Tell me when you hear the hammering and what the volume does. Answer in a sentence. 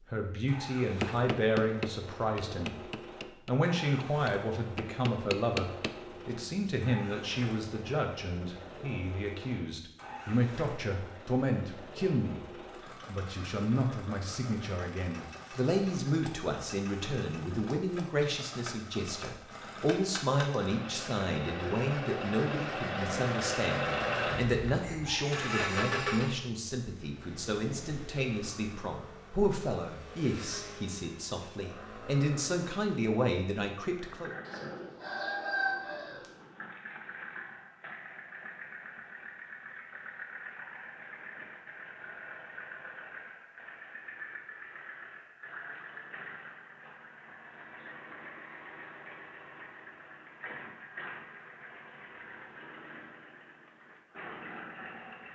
The hammering can be heard from 0.9 to 6.8 s, getting quieter then louder.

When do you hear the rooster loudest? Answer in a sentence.
The loudest moment of the rooster is at 36 seconds.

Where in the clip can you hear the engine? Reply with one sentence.
You can hear the engine from 0.0 to 55.3 s.